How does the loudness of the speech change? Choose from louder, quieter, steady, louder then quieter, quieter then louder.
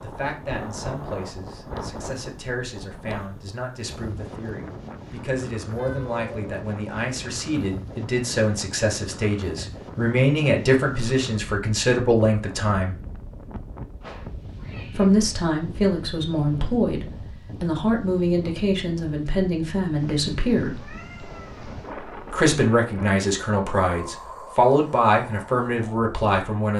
louder.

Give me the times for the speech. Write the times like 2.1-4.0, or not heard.
0.0-12.9, 14.9-20.8, 22.3-26.7.